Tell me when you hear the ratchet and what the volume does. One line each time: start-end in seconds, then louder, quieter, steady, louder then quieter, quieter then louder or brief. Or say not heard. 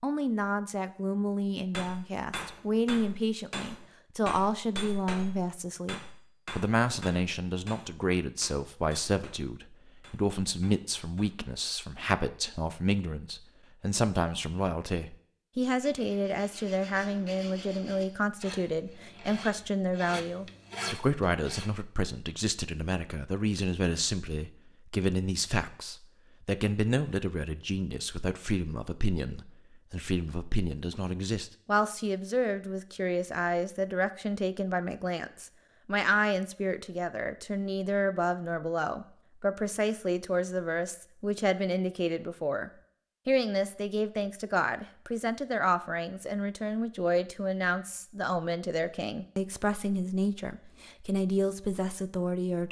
not heard.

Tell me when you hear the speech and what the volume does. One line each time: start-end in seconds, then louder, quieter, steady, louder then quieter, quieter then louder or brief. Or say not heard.
0.0-52.6 steady.